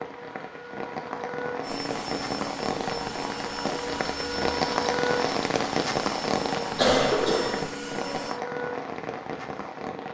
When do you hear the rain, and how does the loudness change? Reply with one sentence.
You can hear the rain from 0.0 to 10.1 s, getting louder then quieter.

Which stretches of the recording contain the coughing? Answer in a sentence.
The coughing can be heard from 6.8 to 7.7 s.